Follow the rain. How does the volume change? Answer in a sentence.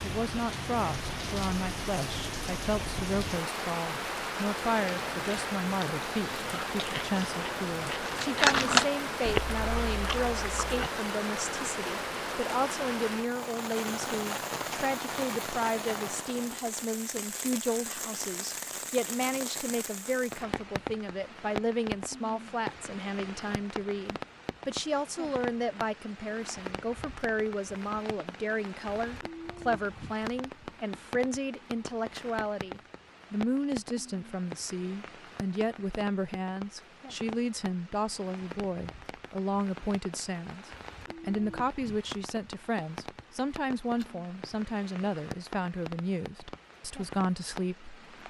The volume of the rain goes down.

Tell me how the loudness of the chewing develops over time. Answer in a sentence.
The loudness of the chewing goes up, then down.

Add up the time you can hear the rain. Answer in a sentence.
You can hear the rain for 48 seconds altogether.